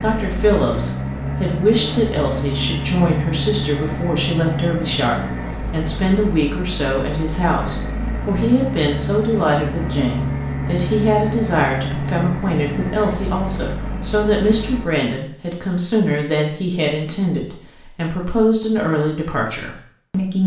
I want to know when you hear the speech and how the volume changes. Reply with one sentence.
You can hear the speech from 0.0 to 20.4 s, at a steady volume.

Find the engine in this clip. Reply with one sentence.
You can hear the engine from 0.0 to 14.9 s.